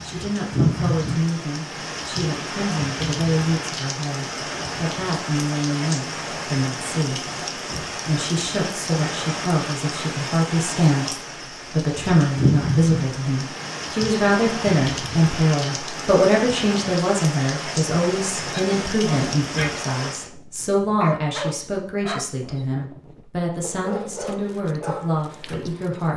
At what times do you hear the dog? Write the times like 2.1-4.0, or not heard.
18.4-26.1.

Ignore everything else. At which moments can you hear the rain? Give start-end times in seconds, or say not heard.
0.0-20.3.